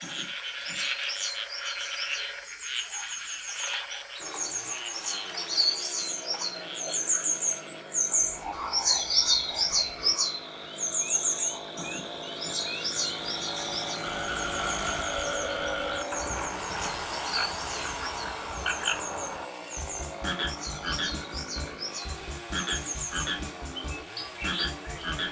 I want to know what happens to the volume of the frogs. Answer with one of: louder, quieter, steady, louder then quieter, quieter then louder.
quieter then louder.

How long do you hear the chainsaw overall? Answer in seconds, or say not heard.
21 s.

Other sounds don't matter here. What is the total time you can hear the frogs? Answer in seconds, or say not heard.
25 s.